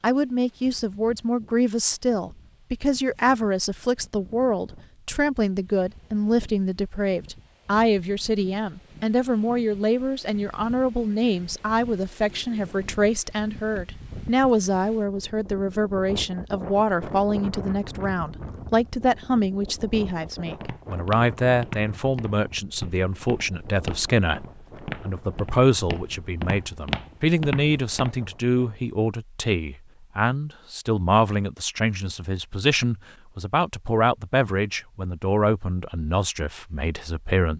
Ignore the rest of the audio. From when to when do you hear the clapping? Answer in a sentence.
You can't hear the clapping here.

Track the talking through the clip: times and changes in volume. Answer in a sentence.
The talking can be heard from 0.0 to 37.5 s, at a steady volume.